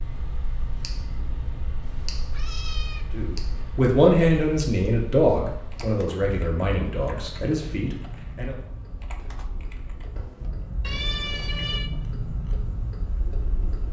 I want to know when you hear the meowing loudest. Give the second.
11 s.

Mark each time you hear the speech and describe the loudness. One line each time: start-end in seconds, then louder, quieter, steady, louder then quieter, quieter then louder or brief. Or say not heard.
3.1-8.6 quieter.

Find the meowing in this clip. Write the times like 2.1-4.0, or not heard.
1.8-3.0, 6.9-7.3, 10.8-11.9.